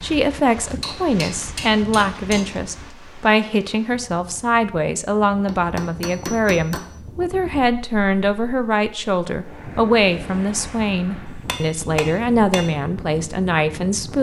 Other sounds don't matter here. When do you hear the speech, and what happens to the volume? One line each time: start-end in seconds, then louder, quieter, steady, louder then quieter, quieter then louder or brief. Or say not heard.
0.0-14.1 steady.